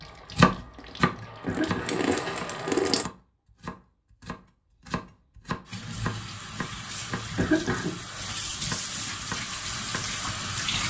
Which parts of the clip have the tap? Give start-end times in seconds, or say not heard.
0.0-3.1, 5.7-10.8.